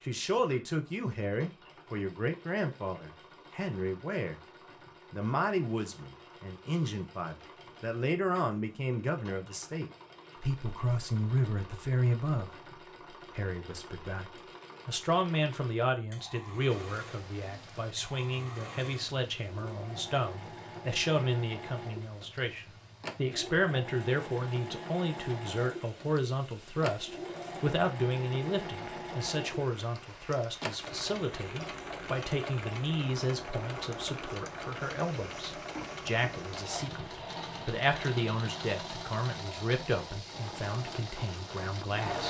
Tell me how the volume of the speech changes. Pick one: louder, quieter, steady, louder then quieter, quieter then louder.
steady.